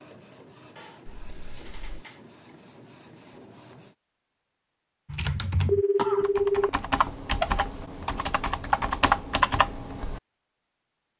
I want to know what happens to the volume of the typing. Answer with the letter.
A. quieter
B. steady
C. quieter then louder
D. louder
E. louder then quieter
D.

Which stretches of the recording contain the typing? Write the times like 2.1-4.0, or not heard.
5.1-10.2.